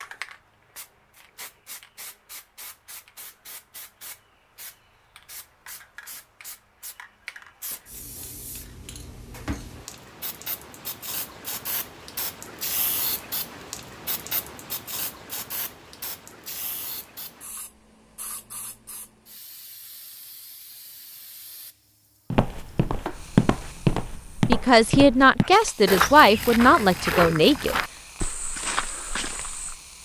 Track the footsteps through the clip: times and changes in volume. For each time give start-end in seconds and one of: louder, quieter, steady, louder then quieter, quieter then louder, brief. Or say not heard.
22.3-29.8 quieter.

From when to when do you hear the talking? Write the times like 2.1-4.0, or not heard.
24.4-27.8.